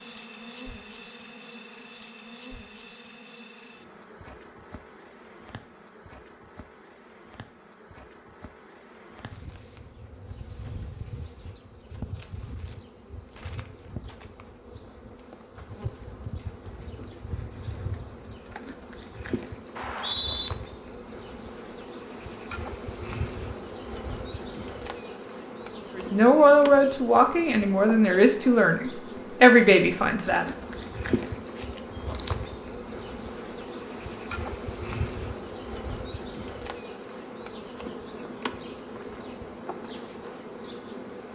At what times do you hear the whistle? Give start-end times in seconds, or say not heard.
19.8-20.5.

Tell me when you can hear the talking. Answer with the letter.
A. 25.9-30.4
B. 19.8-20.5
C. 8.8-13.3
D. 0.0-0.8
A.